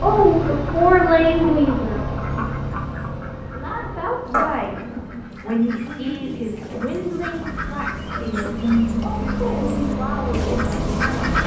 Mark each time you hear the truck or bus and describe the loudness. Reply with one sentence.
You can hear the truck or bus from 0.0 to 11.4 s, getting quieter then louder.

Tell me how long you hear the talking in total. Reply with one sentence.
You can hear the talking for 10 seconds altogether.